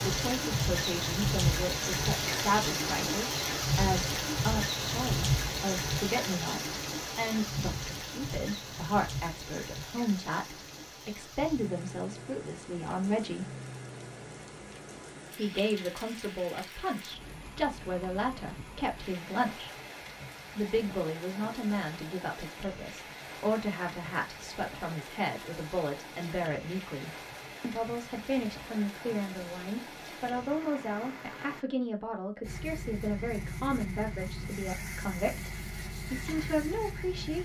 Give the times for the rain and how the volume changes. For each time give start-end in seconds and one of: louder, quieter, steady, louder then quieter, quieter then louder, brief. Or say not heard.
0.0-31.6 quieter.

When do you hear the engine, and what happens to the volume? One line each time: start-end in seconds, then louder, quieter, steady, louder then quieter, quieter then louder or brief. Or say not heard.
32.4-37.4 steady.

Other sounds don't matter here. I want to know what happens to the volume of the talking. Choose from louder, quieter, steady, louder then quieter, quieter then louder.
steady.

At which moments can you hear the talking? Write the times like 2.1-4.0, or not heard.
0.1-13.6, 15.3-19.7, 20.6-37.4.